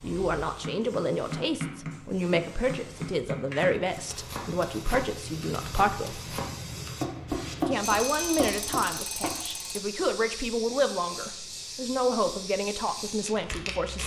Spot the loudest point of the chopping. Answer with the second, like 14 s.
7 s.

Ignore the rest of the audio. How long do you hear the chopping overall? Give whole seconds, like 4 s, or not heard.
9 s.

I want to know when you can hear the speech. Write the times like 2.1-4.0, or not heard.
0.0-6.2, 7.7-14.0.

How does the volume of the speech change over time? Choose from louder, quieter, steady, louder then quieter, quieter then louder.
steady.